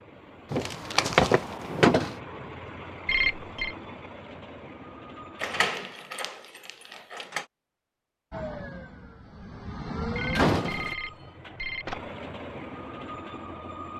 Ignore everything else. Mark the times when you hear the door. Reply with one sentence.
You can hear the door from 0.5 to 2.1 s, from 5.4 to 7.5 s and from 10.3 to 10.9 s.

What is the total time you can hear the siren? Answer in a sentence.
You can hear the siren for 2 seconds altogether.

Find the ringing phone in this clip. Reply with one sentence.
You can hear the ringing phone from 3.0 to 3.8 s and from 10.2 to 12.1 s.